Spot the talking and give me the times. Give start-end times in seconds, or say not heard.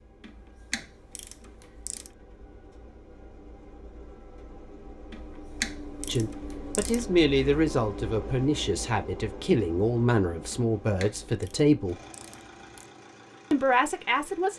6.0-11.9, 13.5-14.5.